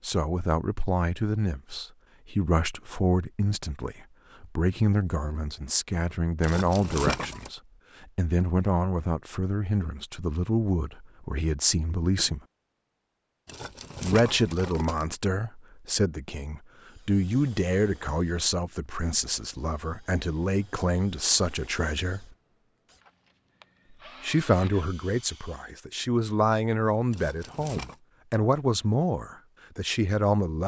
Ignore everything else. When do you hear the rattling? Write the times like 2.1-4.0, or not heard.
6.4-7.5, 13.4-15.1, 27.1-27.9.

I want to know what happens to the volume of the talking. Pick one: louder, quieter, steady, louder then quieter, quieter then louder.
steady.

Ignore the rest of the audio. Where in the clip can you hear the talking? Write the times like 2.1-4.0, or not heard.
0.0-12.4, 14.0-22.2, 24.2-30.6.